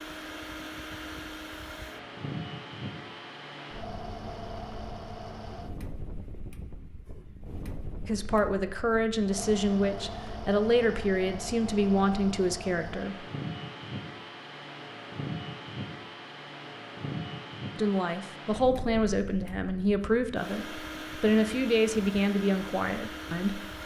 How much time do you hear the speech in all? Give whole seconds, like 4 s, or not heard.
11 s.